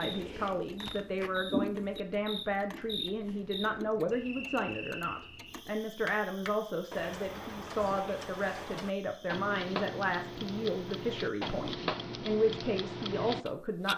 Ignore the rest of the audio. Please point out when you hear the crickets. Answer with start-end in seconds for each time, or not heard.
0.0-11.6.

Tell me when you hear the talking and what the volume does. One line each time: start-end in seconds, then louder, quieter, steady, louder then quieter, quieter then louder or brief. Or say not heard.
0.0-13.9 steady.